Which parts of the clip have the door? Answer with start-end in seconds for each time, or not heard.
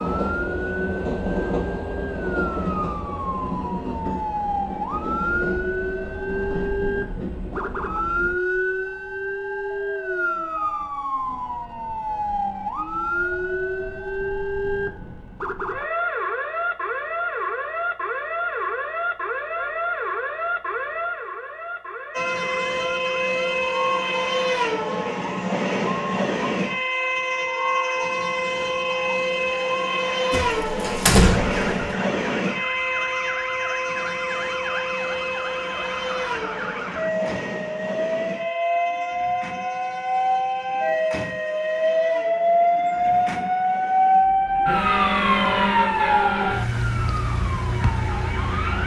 30.3-31.9.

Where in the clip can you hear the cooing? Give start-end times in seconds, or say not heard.
not heard.